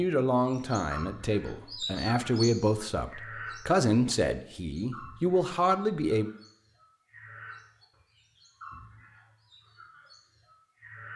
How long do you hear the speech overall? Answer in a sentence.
You can hear the speech for 6 seconds altogether.